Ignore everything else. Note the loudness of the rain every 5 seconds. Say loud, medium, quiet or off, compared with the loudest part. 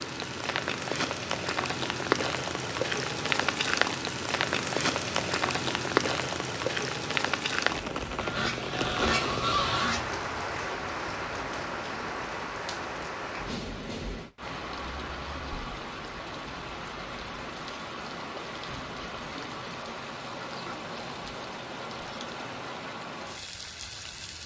loud, loud, medium, medium, medium.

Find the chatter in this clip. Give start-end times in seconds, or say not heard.
not heard.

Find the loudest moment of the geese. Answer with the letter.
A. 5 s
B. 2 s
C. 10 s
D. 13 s
C.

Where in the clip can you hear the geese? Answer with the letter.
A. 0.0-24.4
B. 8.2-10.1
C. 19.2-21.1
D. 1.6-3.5
B.